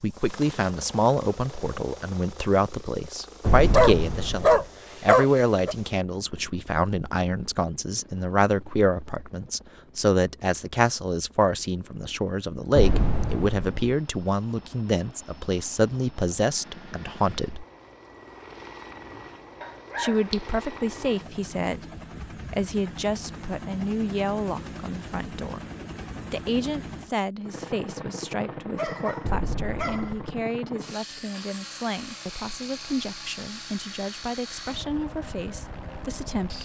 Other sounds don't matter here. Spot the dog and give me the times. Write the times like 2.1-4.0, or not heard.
3.6-5.8, 19.6-20.4, 28.8-30.1.